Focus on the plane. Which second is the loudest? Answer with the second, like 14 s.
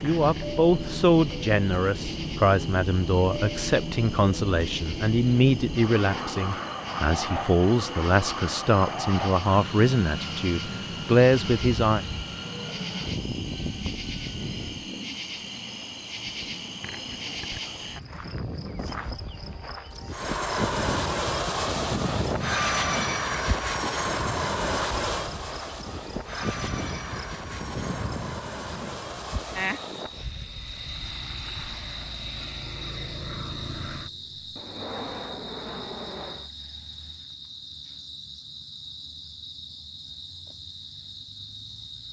23 s.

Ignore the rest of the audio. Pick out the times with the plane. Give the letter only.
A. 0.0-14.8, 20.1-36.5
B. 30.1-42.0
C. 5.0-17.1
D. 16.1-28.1
A.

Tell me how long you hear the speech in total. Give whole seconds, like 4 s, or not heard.
12 s.